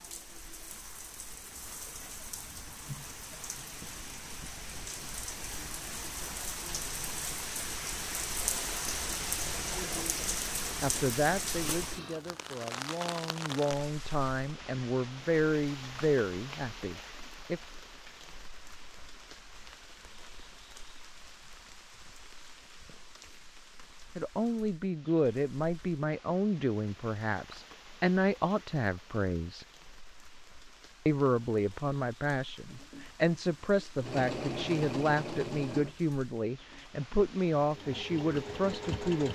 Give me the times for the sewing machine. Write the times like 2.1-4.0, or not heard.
32.7-39.2.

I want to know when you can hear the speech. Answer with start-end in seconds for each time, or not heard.
10.8-17.6, 24.1-29.6, 31.1-39.2.